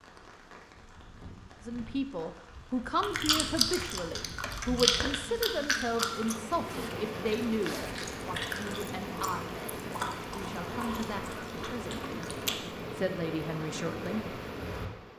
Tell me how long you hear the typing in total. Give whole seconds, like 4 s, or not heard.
not heard.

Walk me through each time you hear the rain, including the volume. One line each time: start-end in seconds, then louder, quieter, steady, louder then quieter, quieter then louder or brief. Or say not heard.
0.0-15.1 louder.